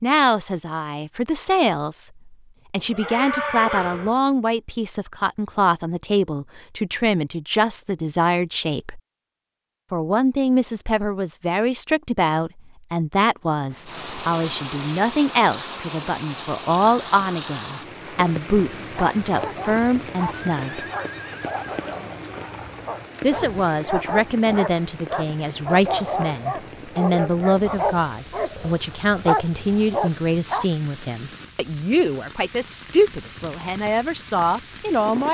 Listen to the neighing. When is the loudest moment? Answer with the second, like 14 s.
4 s.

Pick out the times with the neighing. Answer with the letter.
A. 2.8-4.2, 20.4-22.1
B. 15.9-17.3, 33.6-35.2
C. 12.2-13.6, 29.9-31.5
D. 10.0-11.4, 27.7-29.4
A.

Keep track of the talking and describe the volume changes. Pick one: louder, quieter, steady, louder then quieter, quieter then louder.
steady.